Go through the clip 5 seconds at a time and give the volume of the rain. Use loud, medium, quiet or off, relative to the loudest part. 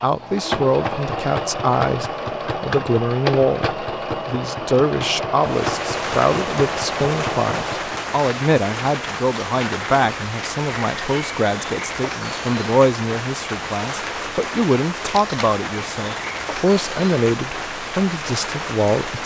off, loud, loud, loud.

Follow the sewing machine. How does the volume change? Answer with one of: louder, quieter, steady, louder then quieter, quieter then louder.
steady.